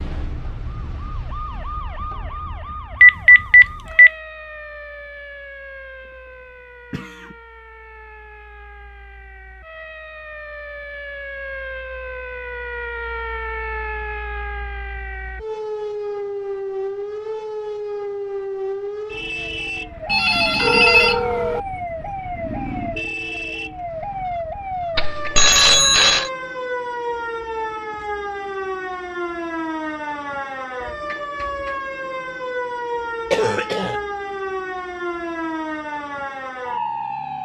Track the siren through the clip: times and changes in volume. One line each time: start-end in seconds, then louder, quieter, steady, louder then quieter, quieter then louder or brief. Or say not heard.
0.0-37.3 louder.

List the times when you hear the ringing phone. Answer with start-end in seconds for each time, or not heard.
3.0-4.1, 20.1-21.6, 24.9-26.3.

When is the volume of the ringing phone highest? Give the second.
3 s.